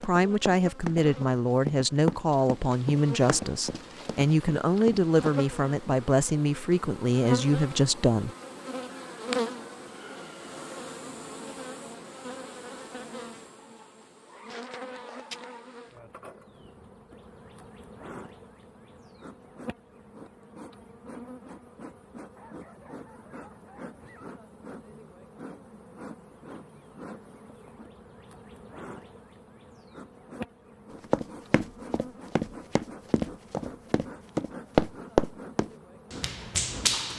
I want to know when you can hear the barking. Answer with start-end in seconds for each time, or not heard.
13.7-15.8, 22.4-24.4.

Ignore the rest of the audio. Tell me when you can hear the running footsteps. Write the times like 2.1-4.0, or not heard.
0.0-5.3, 31.1-37.1.